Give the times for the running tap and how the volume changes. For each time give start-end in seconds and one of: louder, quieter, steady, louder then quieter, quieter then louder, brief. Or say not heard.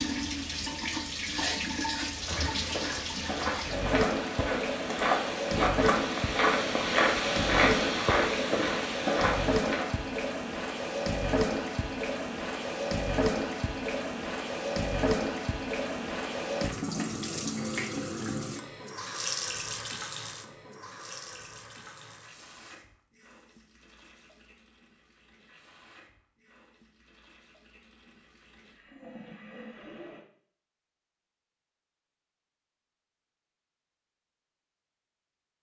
0.0-30.2 quieter.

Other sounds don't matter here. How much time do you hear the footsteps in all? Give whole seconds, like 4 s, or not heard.
8 s.